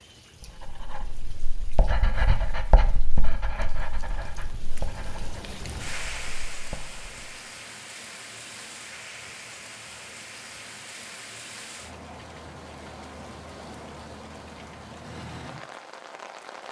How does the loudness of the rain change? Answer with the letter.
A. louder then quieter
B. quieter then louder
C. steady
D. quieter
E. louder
E.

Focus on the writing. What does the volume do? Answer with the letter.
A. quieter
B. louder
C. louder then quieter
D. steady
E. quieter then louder
C.